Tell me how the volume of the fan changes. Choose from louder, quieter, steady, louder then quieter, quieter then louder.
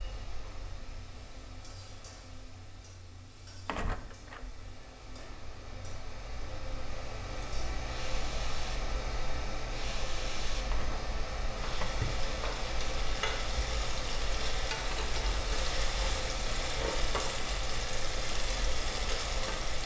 louder.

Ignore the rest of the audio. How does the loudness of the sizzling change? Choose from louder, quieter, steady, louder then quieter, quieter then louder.
louder.